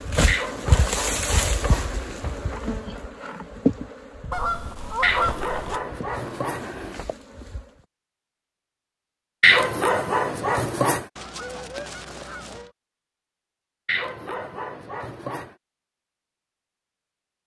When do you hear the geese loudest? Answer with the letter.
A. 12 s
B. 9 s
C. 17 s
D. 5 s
D.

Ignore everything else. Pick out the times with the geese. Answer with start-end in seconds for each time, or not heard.
4.3-5.8, 11.2-12.7.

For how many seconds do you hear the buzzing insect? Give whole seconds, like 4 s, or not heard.
8 s.